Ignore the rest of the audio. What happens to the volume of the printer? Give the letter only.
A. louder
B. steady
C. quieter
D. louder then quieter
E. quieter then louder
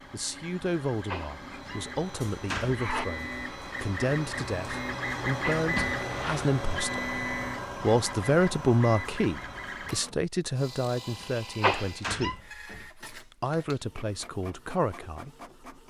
D.